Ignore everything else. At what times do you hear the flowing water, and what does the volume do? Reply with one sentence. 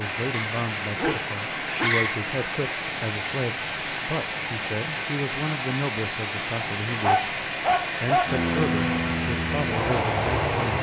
The flowing water can be heard from 0.0 to 10.7 s, at a steady volume.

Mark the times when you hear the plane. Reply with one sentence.
The plane can be heard from 8.2 to 10.7 s.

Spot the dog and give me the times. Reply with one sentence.
The dog can be heard from 0.3 to 2.2 s and from 6.6 to 8.3 s.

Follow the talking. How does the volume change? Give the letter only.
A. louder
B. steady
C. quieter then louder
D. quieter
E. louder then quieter
B.